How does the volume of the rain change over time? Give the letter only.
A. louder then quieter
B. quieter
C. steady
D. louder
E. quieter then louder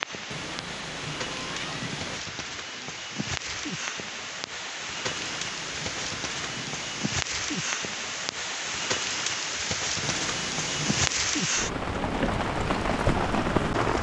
D.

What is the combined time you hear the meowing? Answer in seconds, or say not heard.
5 s.